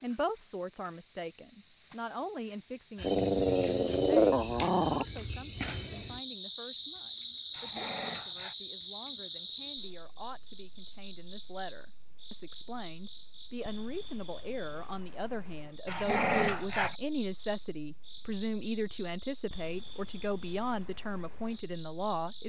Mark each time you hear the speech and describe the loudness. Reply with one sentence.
You can hear the speech from 0.0 to 22.4 s, getting quieter then louder.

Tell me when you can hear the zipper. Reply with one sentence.
You can't hear the zipper here.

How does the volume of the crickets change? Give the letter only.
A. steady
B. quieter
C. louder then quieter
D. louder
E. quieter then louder
B.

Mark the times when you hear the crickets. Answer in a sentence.
The crickets can be heard from 0.0 to 22.4 s.